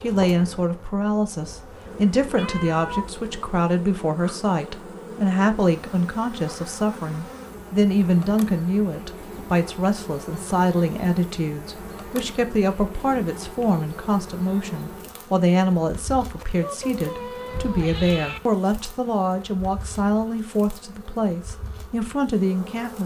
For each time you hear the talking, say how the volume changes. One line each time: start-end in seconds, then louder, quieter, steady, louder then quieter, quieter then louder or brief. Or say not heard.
0.0-23.0 steady.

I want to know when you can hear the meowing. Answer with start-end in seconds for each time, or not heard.
1.5-3.2, 16.4-18.4.